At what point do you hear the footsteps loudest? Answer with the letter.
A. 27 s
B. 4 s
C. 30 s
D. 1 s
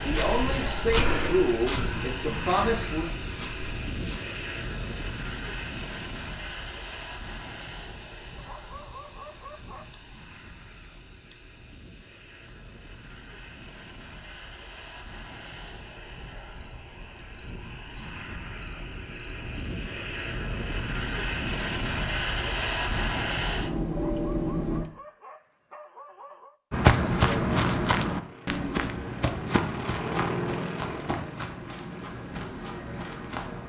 A.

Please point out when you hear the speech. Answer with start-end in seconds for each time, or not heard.
0.0-3.0.